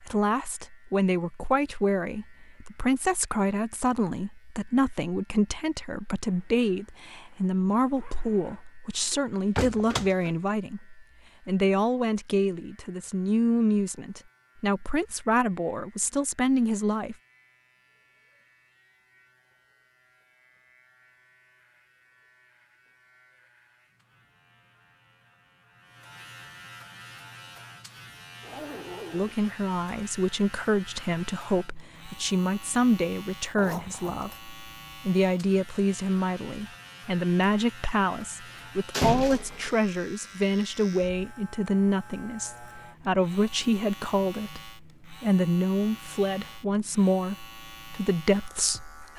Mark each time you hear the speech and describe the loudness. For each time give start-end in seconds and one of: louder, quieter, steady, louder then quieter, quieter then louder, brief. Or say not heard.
0.0-17.1 steady
29.1-49.1 steady.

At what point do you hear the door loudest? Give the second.
39 s.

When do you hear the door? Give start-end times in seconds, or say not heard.
9.1-10.3, 38.9-39.8.